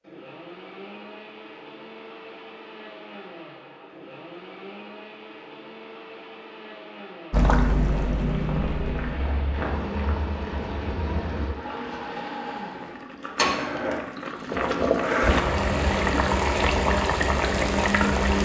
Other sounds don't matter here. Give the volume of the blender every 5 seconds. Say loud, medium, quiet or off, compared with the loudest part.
quiet, quiet, medium, loud.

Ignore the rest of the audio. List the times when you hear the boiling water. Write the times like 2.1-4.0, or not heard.
7.3-18.4.